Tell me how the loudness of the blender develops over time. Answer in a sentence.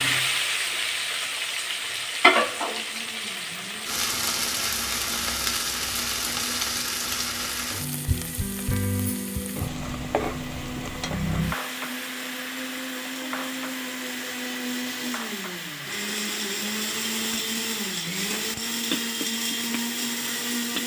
The volume of the blender goes up.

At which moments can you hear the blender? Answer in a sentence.
You can hear the blender from 2.6 to 20.8 s.